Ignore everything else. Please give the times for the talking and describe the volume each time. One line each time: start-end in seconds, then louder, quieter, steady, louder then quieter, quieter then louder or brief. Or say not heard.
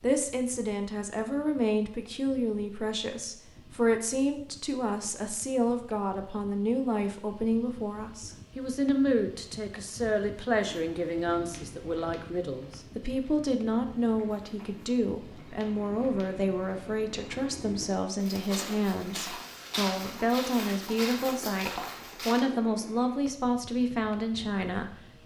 0.0-25.2 steady.